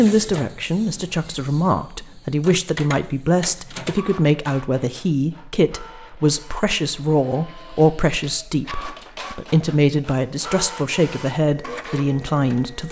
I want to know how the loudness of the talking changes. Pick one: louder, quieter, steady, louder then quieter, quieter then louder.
steady.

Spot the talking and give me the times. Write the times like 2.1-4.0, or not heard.
0.0-12.8.